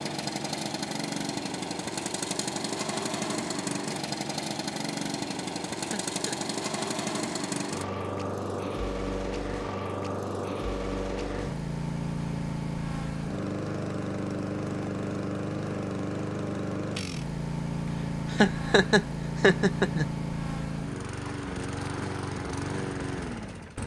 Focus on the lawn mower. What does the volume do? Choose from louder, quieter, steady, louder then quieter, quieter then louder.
steady.